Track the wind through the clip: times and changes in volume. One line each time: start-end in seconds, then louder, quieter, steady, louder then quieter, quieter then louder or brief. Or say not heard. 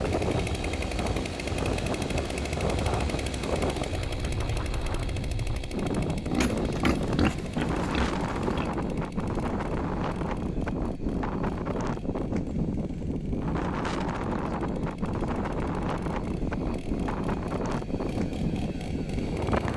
0.0-19.7 steady.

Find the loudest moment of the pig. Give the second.
7 s.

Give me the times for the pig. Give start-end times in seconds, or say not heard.
6.3-8.7.